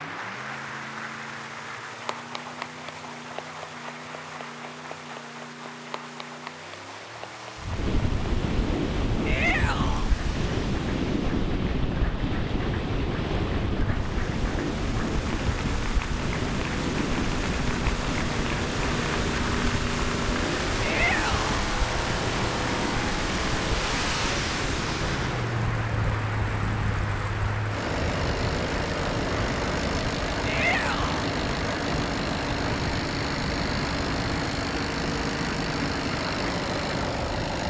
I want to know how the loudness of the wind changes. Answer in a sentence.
The volume of the wind goes down.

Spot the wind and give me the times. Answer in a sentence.
The wind can be heard from 7.5 to 37.6 s.